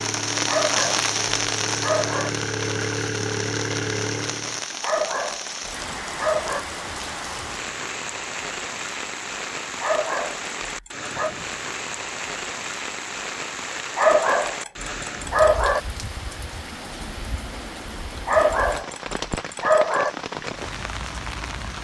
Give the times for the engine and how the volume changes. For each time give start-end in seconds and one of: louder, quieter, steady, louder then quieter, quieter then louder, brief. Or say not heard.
0.0-4.7 louder.